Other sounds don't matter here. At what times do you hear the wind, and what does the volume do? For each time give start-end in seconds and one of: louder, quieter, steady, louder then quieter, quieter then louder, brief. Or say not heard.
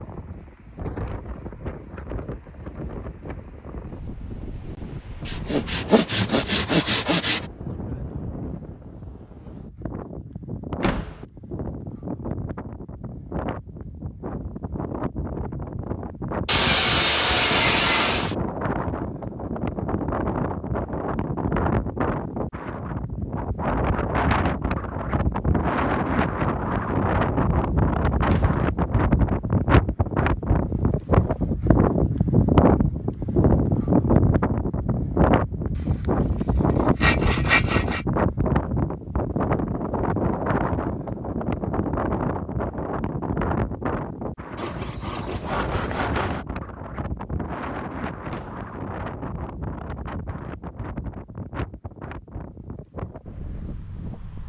0.0-54.4 louder then quieter.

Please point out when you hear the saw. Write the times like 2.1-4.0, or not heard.
5.2-7.5, 16.4-18.4, 35.8-38.0, 44.5-46.5.